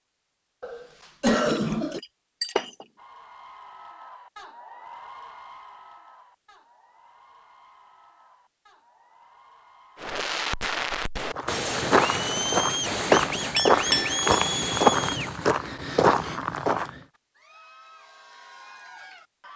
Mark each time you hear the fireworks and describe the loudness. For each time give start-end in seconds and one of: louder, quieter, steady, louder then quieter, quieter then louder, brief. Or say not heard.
9.9-15.4 steady.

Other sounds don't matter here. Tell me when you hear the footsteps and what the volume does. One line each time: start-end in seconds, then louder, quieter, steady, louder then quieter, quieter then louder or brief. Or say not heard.
11.3-16.9 steady.